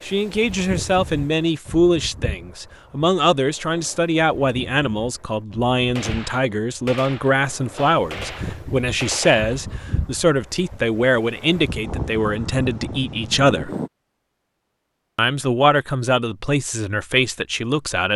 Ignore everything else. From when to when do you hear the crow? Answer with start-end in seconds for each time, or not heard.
not heard.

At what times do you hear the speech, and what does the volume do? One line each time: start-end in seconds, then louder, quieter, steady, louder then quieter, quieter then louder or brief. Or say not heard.
0.0-13.7 steady
15.2-18.1 brief.